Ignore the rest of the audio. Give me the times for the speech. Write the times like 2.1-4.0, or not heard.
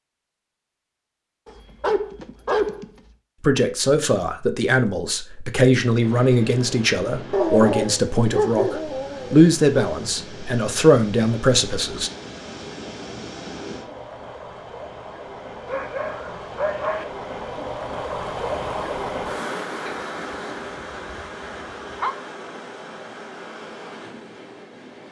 3.4-12.1.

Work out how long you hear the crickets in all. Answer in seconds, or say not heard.
not heard.